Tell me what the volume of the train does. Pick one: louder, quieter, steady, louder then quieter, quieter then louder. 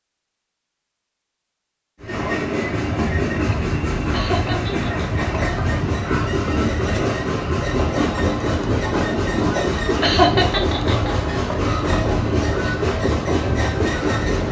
steady.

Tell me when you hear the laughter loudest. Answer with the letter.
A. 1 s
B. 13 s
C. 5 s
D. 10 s
D.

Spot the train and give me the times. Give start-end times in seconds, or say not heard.
2.0-14.4.